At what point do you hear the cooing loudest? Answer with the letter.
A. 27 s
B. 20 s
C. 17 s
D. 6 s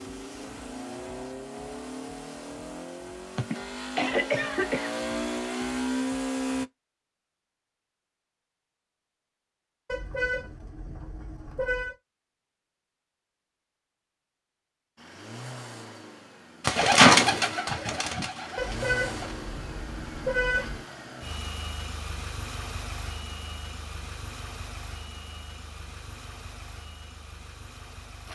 C.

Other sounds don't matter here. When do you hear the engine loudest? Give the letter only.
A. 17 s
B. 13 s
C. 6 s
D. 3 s
C.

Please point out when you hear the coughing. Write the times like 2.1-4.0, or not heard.
3.4-4.9.